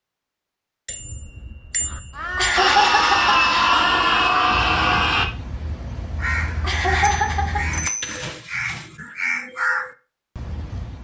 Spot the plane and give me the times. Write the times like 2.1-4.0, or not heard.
2.5-5.2.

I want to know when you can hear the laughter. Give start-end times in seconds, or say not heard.
2.4-3.8, 6.6-7.7.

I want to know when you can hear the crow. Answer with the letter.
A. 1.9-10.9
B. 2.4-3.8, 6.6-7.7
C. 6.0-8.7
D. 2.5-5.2
A.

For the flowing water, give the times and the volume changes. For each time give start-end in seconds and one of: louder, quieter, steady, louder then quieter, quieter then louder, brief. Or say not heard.
not heard.